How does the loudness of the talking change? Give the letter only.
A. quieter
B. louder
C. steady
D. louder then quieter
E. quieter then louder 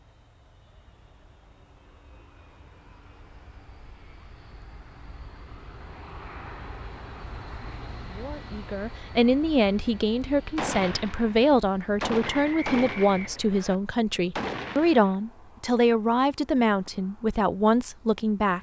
C.